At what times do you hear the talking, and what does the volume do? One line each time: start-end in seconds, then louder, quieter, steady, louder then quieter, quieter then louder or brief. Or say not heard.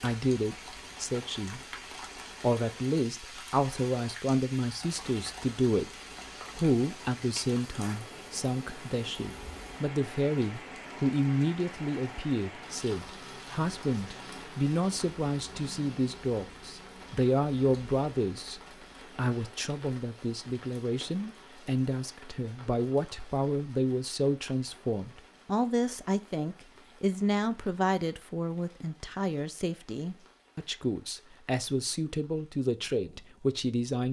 0.0-1.8 brief
2.4-34.0 steady.